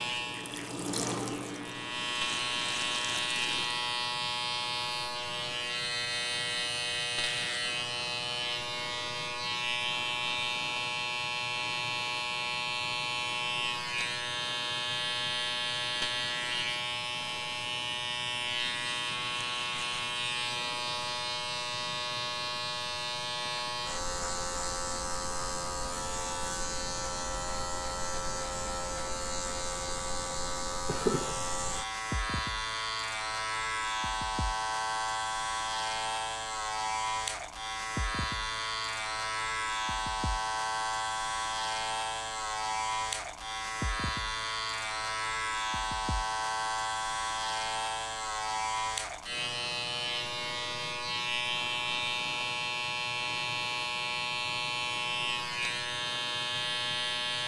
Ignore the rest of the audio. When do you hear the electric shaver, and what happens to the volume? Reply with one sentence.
You can hear the electric shaver from 0.0 to 57.4 s, at a steady volume.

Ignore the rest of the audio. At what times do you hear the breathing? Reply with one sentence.
You can't hear the breathing here.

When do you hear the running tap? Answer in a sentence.
You can hear the running tap from 0.0 to 3.8 s.